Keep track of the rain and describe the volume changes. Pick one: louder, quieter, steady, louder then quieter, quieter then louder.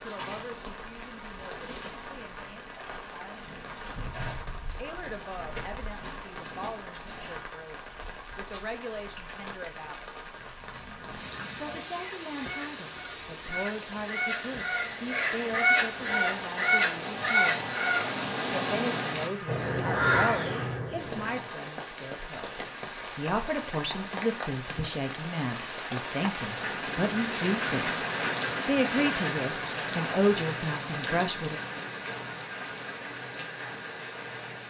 louder.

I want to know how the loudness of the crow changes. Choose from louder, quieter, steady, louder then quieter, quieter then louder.
louder.